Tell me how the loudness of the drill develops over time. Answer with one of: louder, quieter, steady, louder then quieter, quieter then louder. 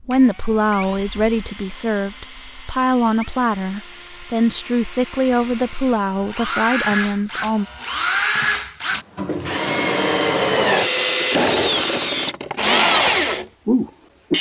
louder.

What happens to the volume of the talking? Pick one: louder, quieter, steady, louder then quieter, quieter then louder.
steady.